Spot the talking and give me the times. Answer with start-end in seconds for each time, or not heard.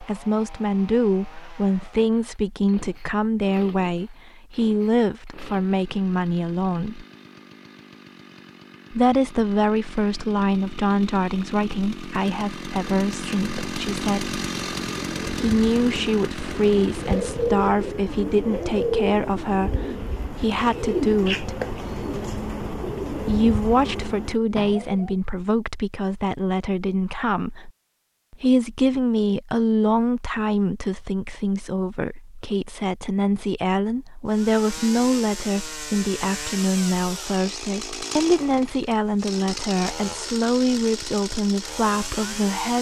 0.0-7.0, 8.9-14.3, 15.3-21.6, 23.2-27.7, 28.3-42.7.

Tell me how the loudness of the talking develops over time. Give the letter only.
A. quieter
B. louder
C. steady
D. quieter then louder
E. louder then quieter
C.